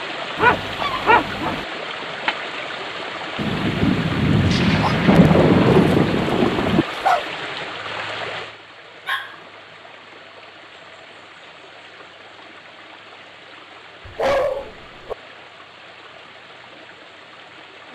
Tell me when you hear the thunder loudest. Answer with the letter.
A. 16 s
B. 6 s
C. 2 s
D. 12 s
B.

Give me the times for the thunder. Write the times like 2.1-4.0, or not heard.
3.4-6.8.